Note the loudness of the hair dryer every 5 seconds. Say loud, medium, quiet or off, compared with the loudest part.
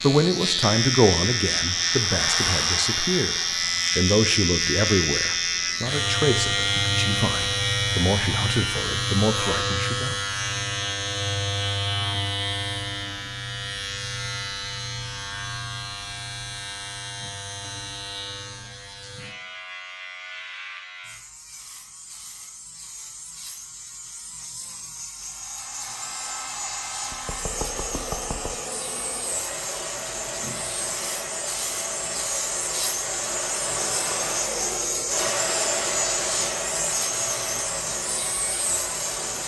loud, off, off, off, off, medium, loud, loud.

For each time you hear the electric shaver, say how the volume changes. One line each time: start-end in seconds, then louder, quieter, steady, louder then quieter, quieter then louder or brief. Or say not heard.
0.0-39.4 quieter then louder.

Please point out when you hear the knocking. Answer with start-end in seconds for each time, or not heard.
27.1-28.6.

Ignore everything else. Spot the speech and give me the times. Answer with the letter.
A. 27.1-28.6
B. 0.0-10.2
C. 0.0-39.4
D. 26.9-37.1
B.